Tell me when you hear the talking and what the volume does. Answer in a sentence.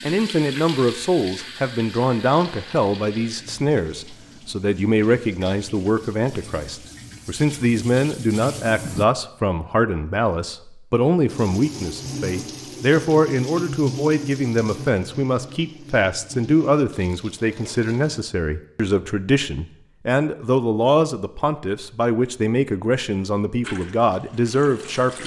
The talking can be heard from 0.0 to 25.2 s, at a steady volume.